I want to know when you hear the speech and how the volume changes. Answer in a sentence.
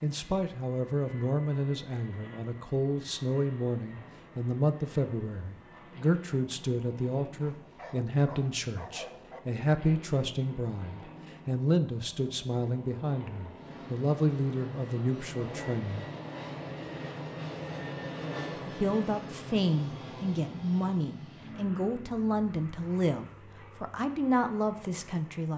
You can hear the speech from 0.0 to 16.1 s, at a steady volume; and from 18.6 to 25.5 s, at a steady volume.